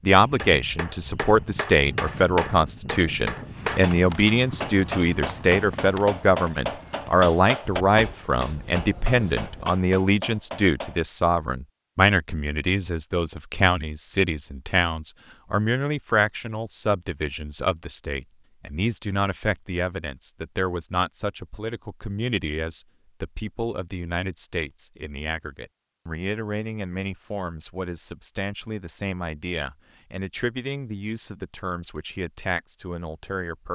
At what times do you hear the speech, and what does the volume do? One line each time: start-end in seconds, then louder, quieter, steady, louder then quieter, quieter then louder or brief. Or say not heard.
0.0-33.6 quieter.